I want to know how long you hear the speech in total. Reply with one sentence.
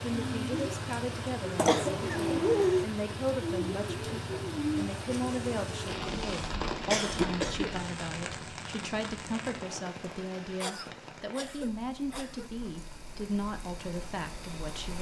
The speech can be heard for 15 seconds in total.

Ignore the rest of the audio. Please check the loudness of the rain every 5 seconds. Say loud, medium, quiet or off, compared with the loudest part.
loud, loud, quiet.